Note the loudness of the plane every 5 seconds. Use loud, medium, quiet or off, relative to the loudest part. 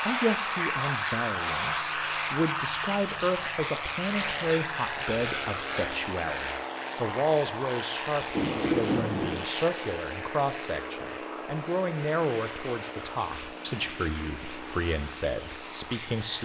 loud, loud, medium, medium.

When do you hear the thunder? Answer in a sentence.
You can hear the thunder from 8.3 to 9.4 s.